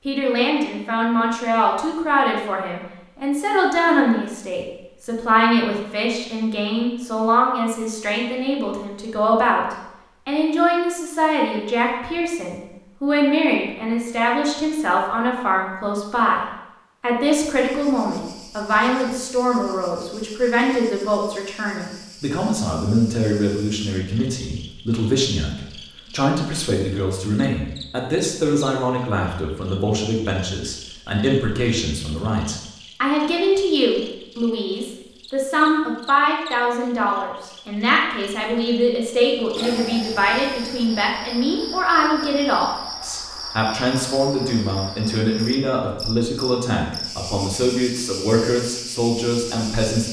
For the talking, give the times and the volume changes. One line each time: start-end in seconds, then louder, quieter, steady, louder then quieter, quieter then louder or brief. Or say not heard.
0.1-50.0 steady.